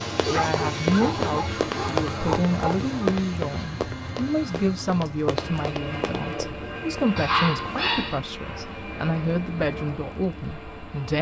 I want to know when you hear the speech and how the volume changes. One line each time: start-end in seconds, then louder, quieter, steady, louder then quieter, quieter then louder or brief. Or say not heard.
0.2-11.1 steady.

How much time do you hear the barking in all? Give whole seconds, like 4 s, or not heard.
4 s.